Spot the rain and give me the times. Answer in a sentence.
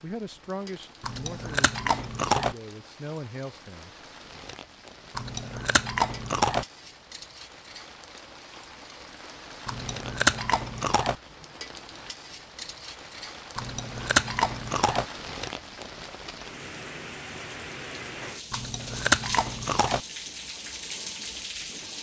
The rain can be heard from 0.0 to 21.9 s.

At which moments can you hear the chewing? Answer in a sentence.
The chewing can be heard from 1.0 to 2.5 s, from 5.2 to 6.7 s, from 9.7 to 11.2 s, from 13.6 to 15.1 s and from 18.5 to 20.0 s.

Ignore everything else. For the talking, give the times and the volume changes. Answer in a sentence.
The talking can be heard from 0.0 to 4.0 s, getting quieter then louder.